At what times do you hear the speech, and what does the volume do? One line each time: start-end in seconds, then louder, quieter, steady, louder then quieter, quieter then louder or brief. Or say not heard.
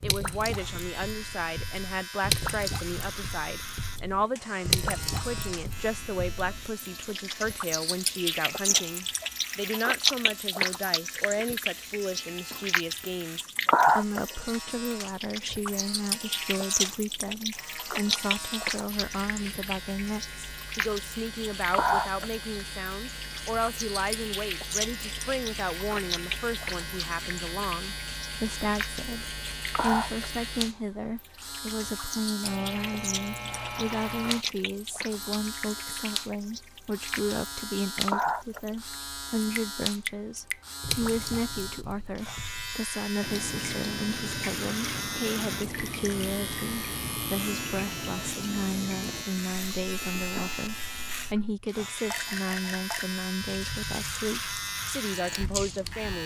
0.0-56.2 steady.